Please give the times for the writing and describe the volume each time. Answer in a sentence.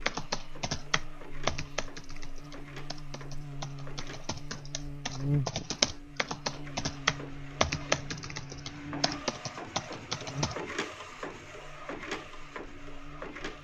You can't hear the writing here.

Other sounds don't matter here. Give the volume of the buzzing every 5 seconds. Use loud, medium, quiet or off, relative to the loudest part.
medium, loud, medium.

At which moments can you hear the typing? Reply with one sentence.
You can hear the typing from 0.1 to 10.6 s.